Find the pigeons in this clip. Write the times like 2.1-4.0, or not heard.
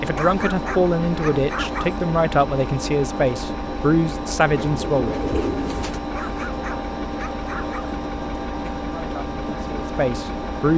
4.6-6.0.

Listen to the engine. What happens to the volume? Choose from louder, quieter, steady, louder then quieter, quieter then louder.
steady.